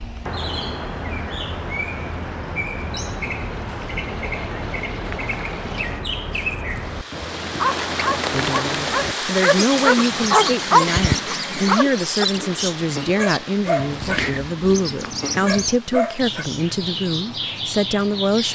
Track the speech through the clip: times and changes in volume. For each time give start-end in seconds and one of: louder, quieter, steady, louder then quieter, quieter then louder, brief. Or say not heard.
8.3-18.5 steady.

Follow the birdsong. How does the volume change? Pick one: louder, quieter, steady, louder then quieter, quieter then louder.
steady.